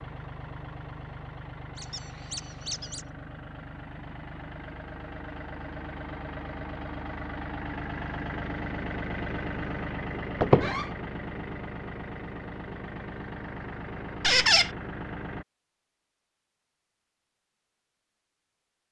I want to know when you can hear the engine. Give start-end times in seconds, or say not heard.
0.0-15.4.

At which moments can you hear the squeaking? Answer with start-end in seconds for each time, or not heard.
1.8-3.0, 10.4-10.8, 14.2-14.7.